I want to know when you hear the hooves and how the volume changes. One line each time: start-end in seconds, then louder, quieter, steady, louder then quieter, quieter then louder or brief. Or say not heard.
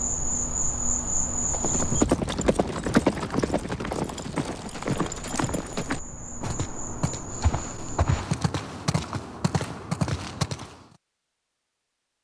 1.4-10.8 quieter.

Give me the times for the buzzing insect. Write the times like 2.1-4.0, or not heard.
0.0-2.0, 4.6-8.2.